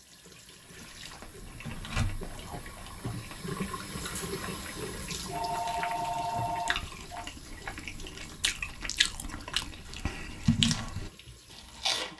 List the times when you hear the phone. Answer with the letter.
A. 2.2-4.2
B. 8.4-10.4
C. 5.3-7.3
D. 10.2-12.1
C.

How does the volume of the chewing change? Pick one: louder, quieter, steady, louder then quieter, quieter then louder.
quieter then louder.